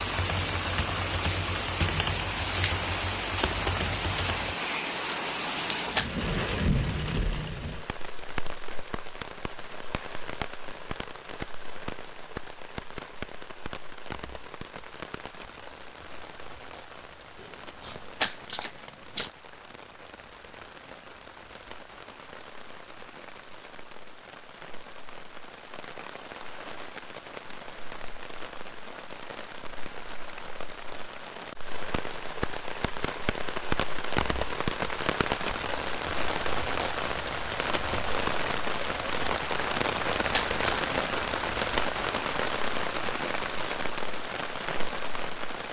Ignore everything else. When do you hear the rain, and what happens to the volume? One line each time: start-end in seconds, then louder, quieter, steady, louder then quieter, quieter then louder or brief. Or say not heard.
0.0-45.6 quieter then louder.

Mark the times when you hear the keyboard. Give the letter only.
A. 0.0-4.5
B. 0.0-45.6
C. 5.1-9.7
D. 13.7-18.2
A.